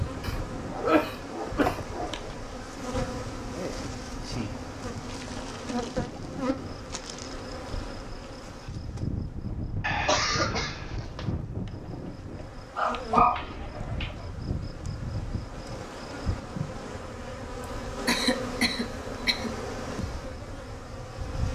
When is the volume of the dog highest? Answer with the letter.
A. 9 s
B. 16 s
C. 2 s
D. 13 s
D.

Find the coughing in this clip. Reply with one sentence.
The coughing can be heard from 0.2 to 1.9 s, from 9.8 to 11.2 s and from 18.1 to 19.5 s.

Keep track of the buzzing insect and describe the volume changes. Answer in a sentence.
The volume of the buzzing insect stays about the same.